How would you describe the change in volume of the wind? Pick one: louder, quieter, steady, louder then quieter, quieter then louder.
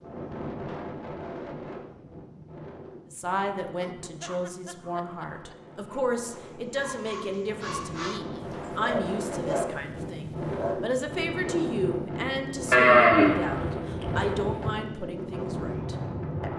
quieter then louder.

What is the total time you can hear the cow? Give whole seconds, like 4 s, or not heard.
2 s.